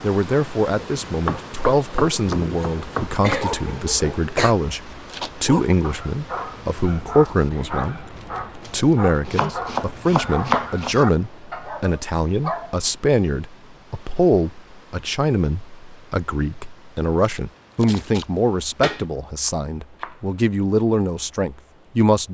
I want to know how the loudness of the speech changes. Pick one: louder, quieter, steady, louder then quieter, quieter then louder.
steady.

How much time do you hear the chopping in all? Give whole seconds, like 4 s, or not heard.
6 s.